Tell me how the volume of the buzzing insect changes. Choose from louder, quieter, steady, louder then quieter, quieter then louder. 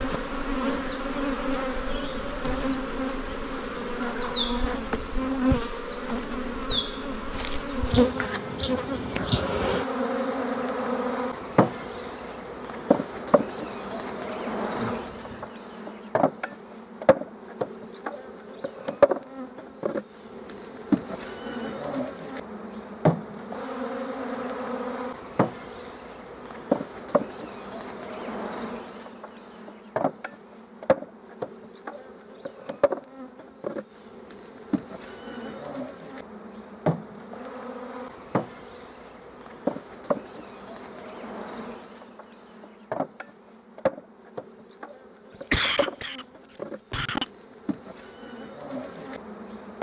quieter.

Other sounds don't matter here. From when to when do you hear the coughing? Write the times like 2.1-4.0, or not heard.
14.7-15.5, 45.3-47.2.